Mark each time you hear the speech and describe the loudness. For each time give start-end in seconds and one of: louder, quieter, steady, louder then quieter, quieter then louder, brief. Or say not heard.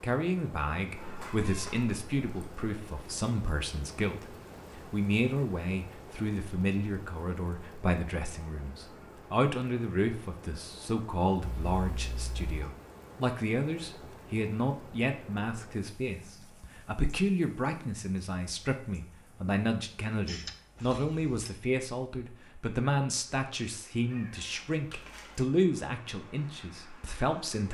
0.0-27.6 steady.